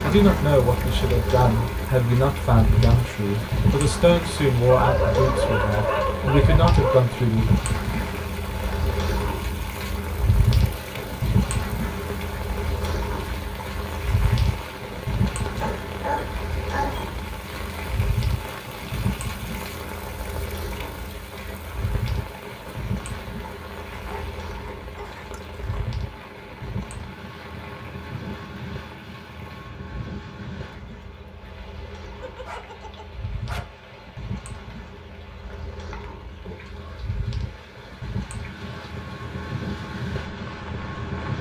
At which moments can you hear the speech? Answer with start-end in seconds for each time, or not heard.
0.0-7.5.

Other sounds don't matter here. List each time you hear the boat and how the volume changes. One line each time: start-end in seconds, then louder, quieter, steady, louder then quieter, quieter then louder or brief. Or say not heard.
0.0-41.3 quieter.